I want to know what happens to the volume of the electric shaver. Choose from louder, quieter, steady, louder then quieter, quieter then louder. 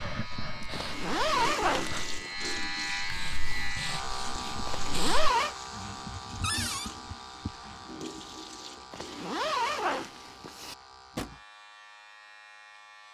quieter.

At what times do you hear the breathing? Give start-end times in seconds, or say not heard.
0.0-5.3.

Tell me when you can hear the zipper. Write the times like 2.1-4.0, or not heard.
0.7-2.0, 4.7-5.5, 8.9-10.8.